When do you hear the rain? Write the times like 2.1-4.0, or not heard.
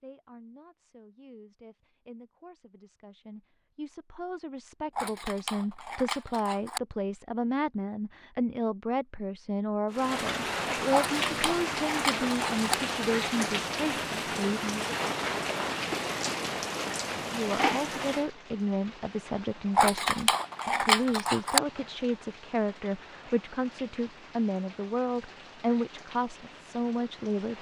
9.9-27.5.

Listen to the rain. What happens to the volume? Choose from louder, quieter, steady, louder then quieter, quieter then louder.
quieter.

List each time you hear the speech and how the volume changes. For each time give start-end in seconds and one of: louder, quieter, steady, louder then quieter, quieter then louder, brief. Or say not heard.
0.0-14.9 louder
17.2-27.5 steady.